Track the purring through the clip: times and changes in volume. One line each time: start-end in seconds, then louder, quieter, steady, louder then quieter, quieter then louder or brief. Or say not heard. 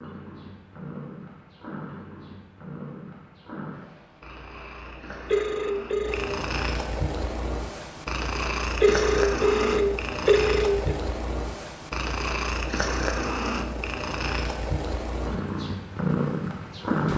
0.0-17.1 louder.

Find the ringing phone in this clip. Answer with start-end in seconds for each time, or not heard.
5.3-6.3, 8.8-10.9.